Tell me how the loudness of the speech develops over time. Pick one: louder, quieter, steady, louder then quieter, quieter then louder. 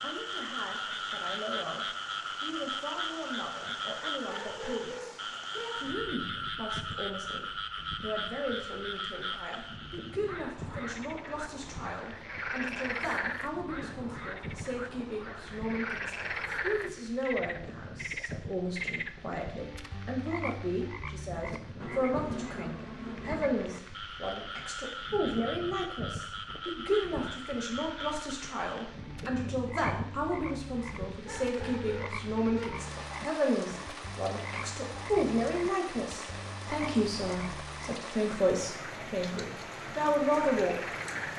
louder.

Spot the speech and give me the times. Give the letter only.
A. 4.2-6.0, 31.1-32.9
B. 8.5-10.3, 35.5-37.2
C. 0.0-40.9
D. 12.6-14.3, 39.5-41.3
C.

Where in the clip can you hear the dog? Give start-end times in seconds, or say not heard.
4.2-6.0, 31.1-32.9.